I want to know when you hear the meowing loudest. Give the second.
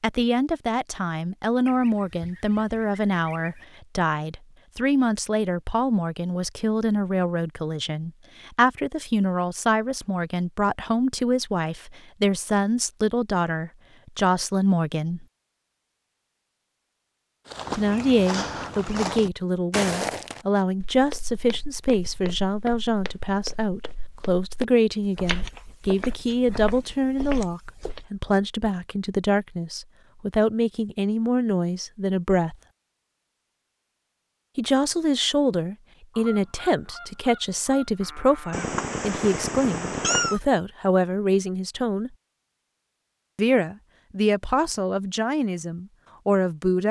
40 s.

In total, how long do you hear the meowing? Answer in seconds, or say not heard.
2 s.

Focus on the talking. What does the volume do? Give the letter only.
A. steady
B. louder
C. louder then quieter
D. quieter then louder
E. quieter
A.